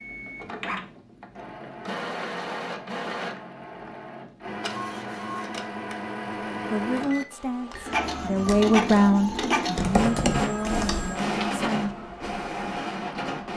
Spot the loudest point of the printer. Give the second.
9 s.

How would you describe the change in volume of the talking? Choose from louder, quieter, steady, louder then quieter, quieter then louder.
louder then quieter.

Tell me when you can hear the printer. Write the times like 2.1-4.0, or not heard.
0.0-13.5.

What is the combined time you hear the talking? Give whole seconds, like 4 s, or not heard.
5 s.